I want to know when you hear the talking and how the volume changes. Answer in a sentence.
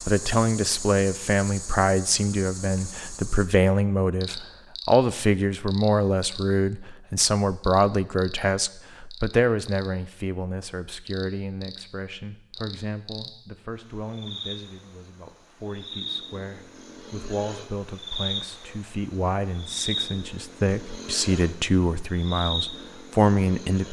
The talking can be heard from 0.0 to 23.8 s, getting quieter then louder.